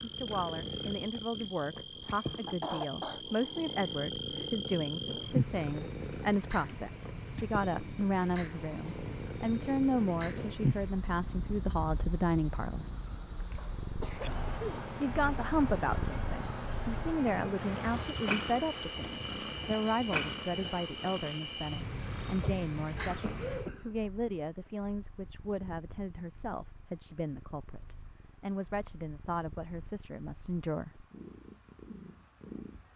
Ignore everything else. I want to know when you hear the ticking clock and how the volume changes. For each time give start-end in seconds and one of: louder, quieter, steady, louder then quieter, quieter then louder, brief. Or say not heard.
not heard.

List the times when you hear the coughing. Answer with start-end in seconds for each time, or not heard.
2.0-3.2, 13.6-14.7, 22.9-24.1.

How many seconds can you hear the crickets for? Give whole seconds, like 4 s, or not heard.
33 s.